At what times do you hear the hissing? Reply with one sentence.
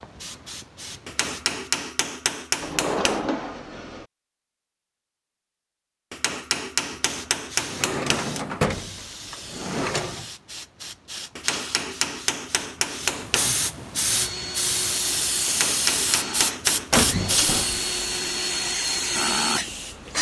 You can hear the hissing from 0.0 to 1.7 s and from 6.9 to 20.1 s.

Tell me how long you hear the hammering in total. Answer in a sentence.
The hammering can be heard for 8 seconds in total.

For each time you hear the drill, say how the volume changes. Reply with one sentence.
You can hear the drill from 14.1 to 20.1 s, getting louder.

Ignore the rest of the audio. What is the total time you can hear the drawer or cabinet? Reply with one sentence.
You can hear the drawer or cabinet for 5 seconds altogether.